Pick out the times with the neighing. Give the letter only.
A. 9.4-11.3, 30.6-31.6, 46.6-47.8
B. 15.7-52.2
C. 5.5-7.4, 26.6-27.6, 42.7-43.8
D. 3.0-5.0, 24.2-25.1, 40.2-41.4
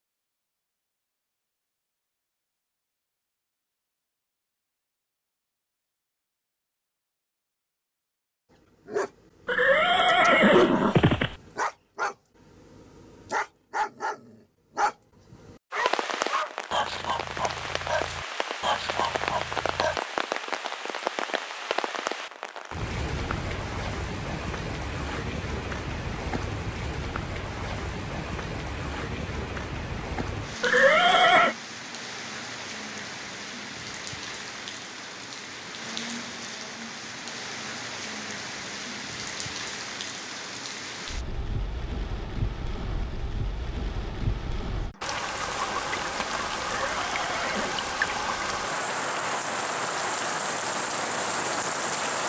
A.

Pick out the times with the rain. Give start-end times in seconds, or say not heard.
15.7-52.2.